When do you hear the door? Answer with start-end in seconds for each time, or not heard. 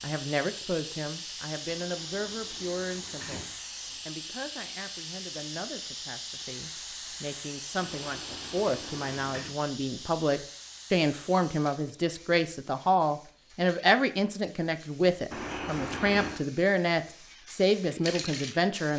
1.6-3.5, 7.8-9.6, 15.3-16.4.